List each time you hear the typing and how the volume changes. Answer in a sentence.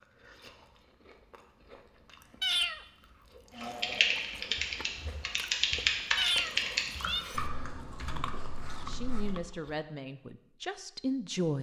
You can hear the typing from 3.5 to 9.3 s, getting quieter.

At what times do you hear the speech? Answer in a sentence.
You can hear the speech from 8.1 to 11.5 s.